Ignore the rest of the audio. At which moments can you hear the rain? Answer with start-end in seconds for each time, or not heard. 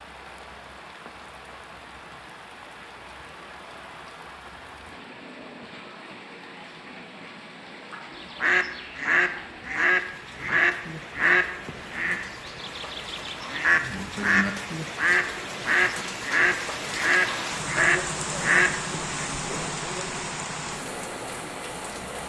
0.0-22.2.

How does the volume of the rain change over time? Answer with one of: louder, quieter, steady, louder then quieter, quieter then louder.
louder.